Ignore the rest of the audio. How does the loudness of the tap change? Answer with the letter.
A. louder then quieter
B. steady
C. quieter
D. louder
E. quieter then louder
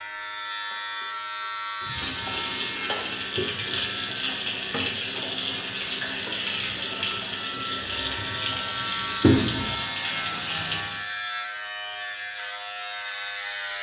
B.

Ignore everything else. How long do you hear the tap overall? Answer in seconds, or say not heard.
9 s.